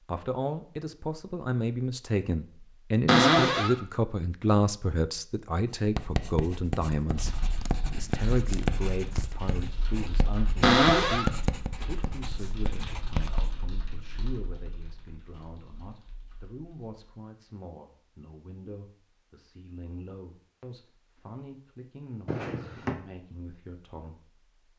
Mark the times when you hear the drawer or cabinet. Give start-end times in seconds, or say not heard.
3.0-3.8, 10.6-11.3, 22.2-22.9.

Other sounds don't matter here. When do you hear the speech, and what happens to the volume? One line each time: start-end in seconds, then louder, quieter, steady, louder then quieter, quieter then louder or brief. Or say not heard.
0.0-24.4 quieter.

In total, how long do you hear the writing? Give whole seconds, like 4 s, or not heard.
8 s.